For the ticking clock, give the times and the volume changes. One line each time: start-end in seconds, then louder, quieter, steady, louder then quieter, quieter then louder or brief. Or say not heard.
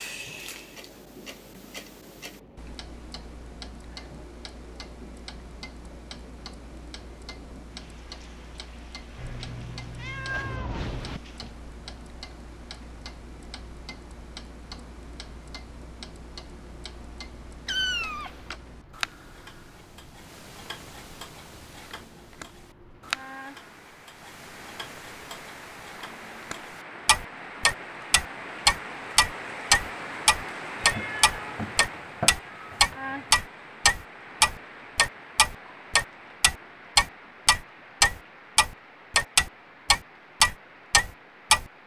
0.0-41.6 louder.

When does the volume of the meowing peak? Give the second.
18 s.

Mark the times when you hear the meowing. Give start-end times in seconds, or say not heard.
9.2-11.2, 17.6-18.6, 30.8-33.2.